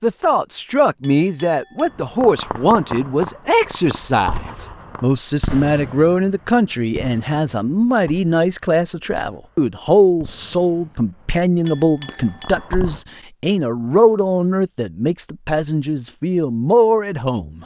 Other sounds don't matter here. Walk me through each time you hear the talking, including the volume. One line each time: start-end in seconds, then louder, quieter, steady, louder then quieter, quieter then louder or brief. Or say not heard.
0.0-17.6 steady.